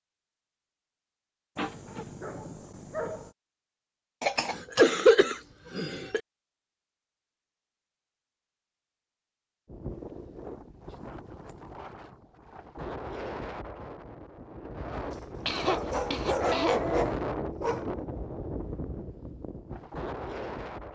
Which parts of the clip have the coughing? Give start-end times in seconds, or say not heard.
4.2-6.2, 15.4-17.1.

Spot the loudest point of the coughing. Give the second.
5 s.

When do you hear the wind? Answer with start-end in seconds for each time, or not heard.
9.7-20.9.